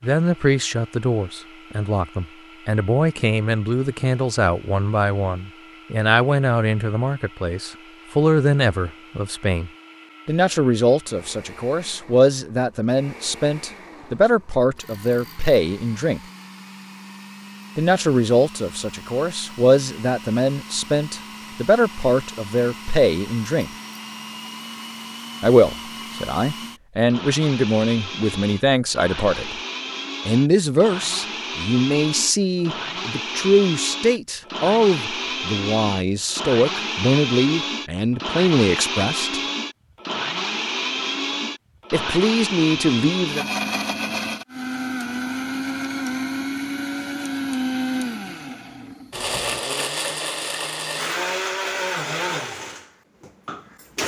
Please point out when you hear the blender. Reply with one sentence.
The blender can be heard from 0.0 to 54.0 s.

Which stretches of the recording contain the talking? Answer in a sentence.
The talking can be heard from 0.0 to 16.2 s, from 17.8 to 23.7 s, from 25.4 to 29.6 s, from 30.2 to 39.4 s and from 41.9 to 43.5 s.